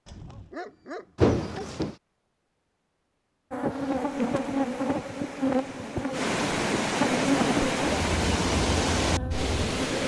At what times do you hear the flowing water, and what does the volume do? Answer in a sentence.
The flowing water can be heard from 3.6 to 10.0 s, getting louder.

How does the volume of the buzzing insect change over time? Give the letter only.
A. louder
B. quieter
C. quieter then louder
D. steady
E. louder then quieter
B.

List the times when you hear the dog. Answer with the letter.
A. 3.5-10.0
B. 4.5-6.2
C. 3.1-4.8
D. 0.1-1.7
D.